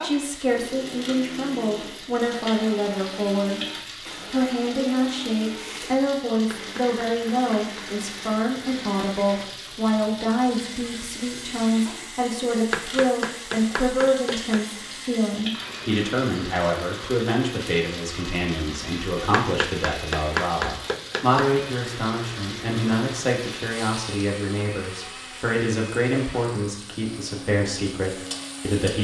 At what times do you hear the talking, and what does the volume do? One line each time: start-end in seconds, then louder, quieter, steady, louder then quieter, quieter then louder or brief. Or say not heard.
0.0-28.9 steady.